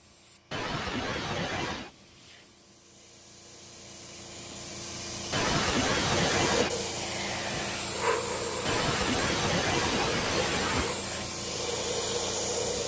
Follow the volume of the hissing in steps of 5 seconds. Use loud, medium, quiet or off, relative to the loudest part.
quiet, loud, loud.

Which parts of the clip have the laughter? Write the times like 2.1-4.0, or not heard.
0.5-1.9, 5.3-6.7, 8.7-10.9.